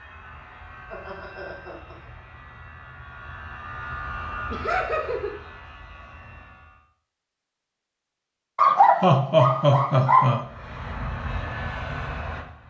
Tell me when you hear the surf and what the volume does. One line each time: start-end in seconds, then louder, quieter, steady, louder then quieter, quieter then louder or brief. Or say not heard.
not heard.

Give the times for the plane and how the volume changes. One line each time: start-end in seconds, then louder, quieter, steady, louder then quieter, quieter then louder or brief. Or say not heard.
0.0-6.8 louder then quieter
10.4-12.6 brief.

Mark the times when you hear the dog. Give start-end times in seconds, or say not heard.
8.6-10.3.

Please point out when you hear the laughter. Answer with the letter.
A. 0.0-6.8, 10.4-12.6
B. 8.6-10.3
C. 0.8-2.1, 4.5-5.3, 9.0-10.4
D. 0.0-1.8
C.